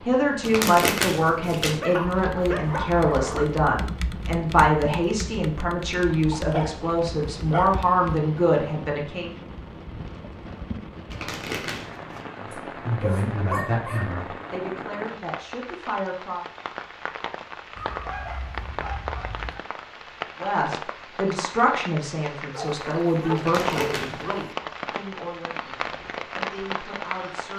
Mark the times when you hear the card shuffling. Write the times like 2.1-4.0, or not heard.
0.4-1.8, 11.1-12.2, 23.4-24.4.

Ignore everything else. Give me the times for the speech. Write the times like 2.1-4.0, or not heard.
0.1-9.3, 12.4-16.4, 20.4-27.5.